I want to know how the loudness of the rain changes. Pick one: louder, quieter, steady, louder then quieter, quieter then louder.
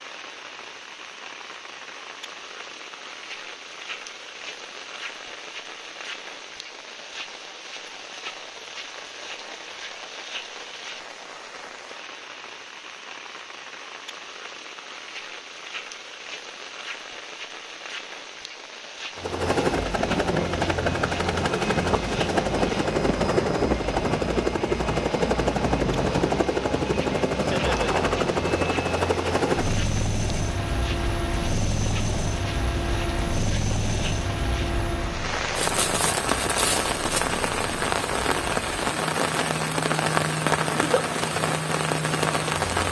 louder.